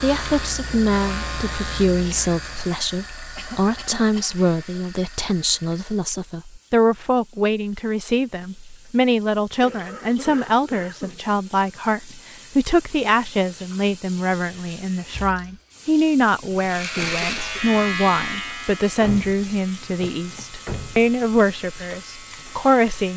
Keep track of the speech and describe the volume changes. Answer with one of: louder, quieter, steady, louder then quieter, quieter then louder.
steady.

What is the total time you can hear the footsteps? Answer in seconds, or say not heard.
not heard.